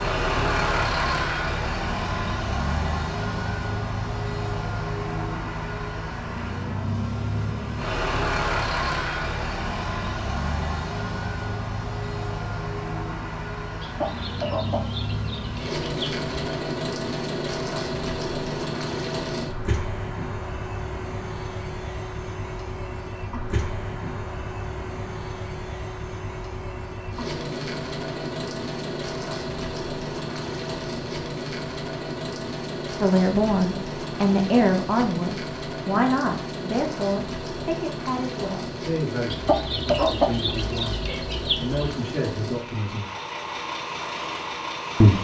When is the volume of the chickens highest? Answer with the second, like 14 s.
40 s.